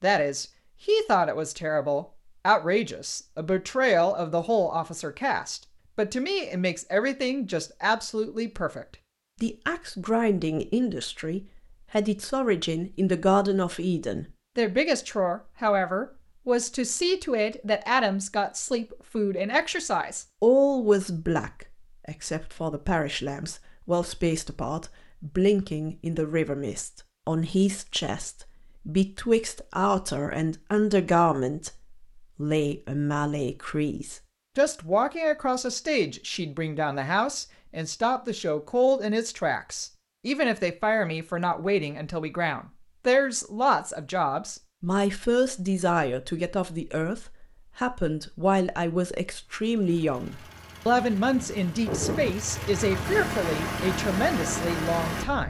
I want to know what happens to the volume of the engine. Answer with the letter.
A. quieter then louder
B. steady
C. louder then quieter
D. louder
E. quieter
D.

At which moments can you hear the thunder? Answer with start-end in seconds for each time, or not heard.
50.9-52.4.